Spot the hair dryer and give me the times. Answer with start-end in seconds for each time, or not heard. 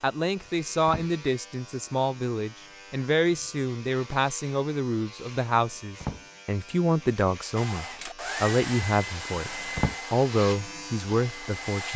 7.5-11.9.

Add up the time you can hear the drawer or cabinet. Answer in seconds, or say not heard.
2 s.